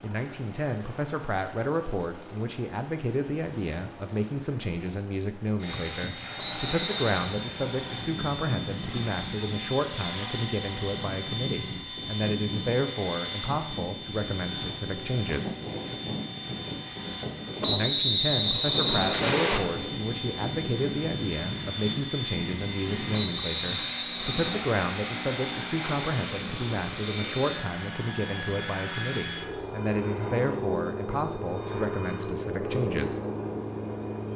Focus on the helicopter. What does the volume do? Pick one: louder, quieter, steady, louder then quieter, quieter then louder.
louder.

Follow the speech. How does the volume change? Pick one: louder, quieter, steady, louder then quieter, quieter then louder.
steady.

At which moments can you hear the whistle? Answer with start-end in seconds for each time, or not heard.
6.3-7.3, 17.6-19.6, 23.1-24.6.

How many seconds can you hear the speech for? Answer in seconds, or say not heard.
31 s.